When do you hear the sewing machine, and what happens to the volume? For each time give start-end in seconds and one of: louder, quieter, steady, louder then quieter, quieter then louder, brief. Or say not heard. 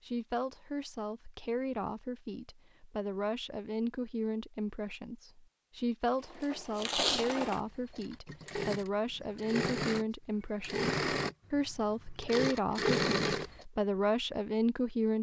6.1-13.7 louder.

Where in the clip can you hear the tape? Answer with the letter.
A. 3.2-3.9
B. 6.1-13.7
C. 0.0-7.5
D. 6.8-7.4
D.